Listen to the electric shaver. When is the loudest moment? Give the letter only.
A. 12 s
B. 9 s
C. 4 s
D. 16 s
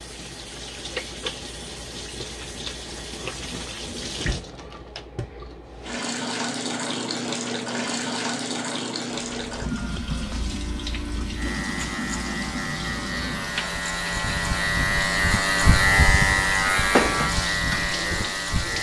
D.